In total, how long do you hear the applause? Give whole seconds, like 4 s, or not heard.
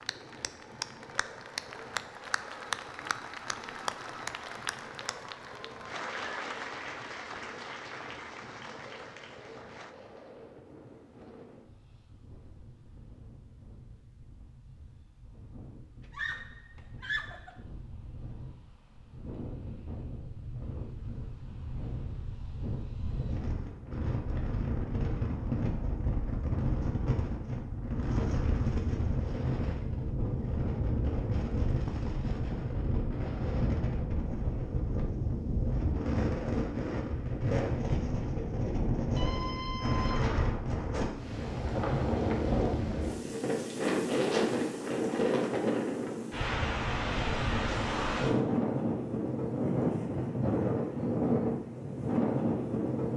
10 s.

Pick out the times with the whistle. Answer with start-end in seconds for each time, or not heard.
not heard.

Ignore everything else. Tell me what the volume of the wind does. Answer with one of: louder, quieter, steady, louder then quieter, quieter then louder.
louder.